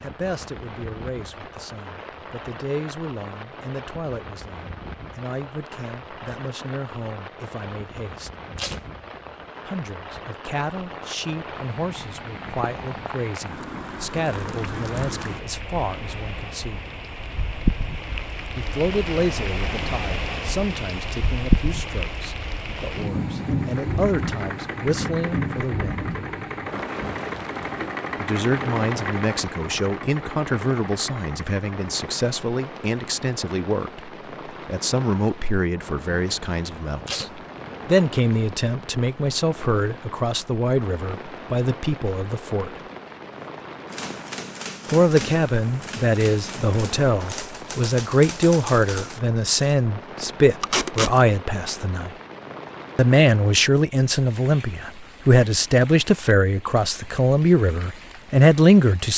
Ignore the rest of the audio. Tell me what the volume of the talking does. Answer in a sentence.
The loudness of the talking goes up.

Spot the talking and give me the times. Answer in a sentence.
You can hear the talking from 0.0 to 8.3 s, from 9.7 to 16.9 s, from 18.6 to 26.1 s, from 28.2 to 42.8 s, from 44.9 to 52.1 s and from 53.0 to 59.1 s.